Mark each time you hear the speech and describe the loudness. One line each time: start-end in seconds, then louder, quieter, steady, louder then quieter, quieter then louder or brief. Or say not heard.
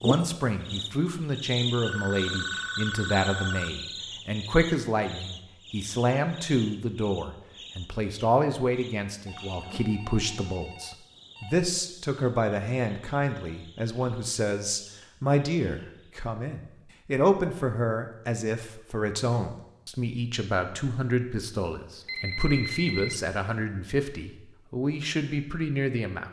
0.0-26.2 steady.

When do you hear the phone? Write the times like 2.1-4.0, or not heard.
1.9-3.7, 9.2-11.7, 22.1-23.2.